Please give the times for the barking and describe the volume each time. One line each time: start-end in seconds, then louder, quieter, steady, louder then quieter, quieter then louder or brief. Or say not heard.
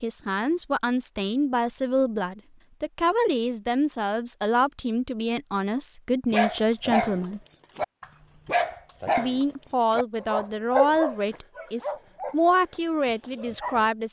6.3-13.9 quieter.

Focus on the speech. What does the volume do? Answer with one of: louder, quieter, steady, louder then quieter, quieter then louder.
steady.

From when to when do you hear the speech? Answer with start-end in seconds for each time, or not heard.
0.0-7.4, 9.2-14.0.